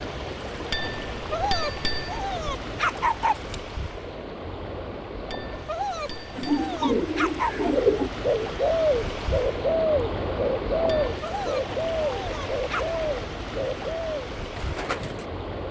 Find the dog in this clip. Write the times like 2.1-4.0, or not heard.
1.3-3.6, 5.7-7.7, 11.2-13.0.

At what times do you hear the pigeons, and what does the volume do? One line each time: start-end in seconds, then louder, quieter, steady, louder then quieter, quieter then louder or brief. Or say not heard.
6.3-15.3 quieter.